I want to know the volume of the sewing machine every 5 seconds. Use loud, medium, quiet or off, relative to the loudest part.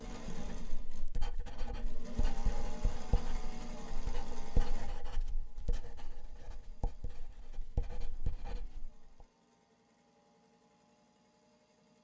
loud, quiet, quiet.